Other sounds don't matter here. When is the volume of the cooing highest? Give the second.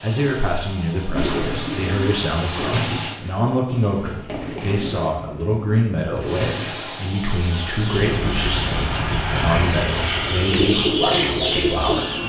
11 s.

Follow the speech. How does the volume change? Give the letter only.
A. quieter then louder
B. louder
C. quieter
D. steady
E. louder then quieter
D.